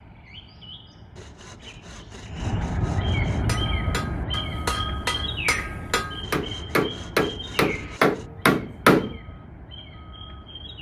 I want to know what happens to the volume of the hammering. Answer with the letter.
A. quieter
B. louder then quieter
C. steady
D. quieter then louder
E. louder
E.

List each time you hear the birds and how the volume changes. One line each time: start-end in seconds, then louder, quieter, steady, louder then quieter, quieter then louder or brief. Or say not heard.
0.0-10.7 louder then quieter.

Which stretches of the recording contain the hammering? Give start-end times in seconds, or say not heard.
3.4-9.2.